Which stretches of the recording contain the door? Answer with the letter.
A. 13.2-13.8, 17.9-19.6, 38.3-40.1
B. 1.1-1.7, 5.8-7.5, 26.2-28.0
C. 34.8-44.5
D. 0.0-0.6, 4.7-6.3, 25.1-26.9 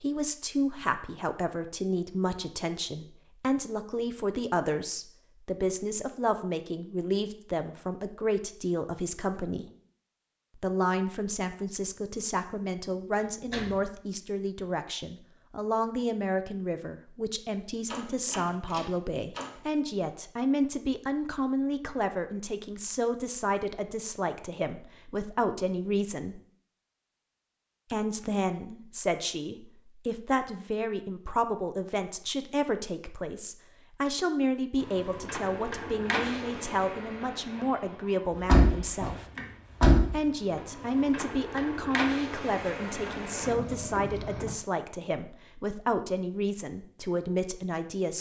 A.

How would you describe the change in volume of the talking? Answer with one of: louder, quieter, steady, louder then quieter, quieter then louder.
steady.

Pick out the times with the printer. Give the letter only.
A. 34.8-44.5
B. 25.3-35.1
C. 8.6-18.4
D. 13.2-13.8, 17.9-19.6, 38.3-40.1
A.